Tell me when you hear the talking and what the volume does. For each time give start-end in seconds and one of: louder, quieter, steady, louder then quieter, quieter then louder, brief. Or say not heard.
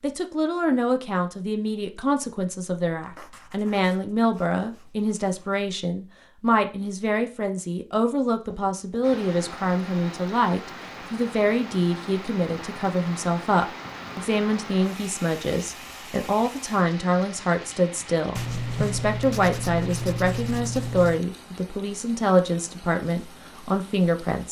0.0-24.4 steady.